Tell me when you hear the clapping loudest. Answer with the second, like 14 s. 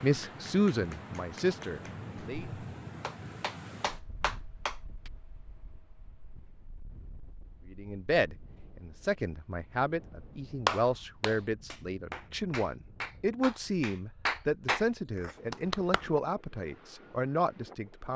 11 s.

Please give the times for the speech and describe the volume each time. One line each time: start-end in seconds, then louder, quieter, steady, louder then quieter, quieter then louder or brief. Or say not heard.
0.0-2.5 brief
7.7-18.1 steady.